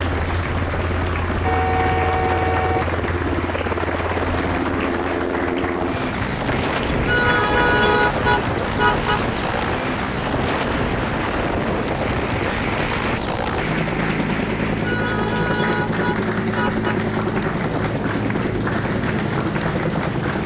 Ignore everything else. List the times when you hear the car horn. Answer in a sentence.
The car horn can be heard from 1.4 to 3.0 s, from 6.9 to 9.3 s and from 14.8 to 17.1 s.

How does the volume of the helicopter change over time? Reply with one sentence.
The loudness of the helicopter stays about the same.